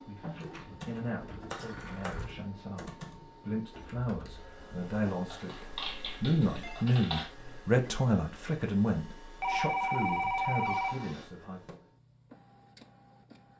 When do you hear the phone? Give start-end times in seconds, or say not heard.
0.2-2.2, 5.7-6.8, 9.4-11.1.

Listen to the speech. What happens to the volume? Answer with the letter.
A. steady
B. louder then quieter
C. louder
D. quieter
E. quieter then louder
B.